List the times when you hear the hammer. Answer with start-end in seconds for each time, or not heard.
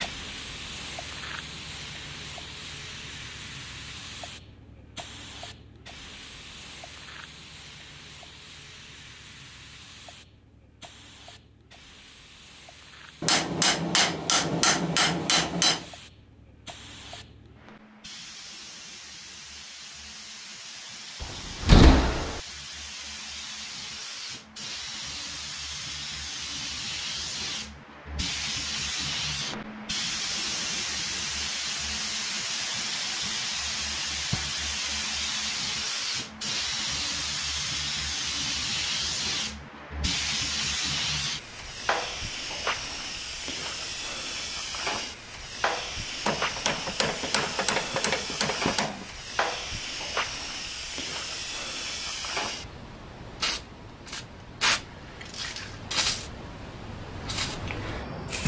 13.2-15.9, 46.2-49.0.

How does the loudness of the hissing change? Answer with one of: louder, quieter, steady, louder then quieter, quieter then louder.
louder.